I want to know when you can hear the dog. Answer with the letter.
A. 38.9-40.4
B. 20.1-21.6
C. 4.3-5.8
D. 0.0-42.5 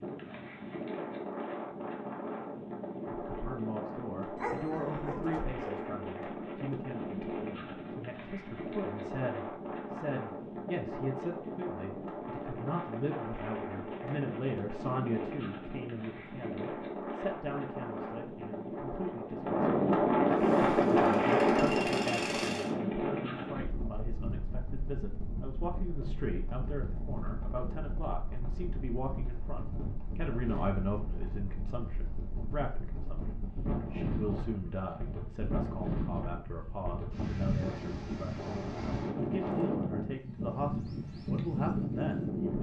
C.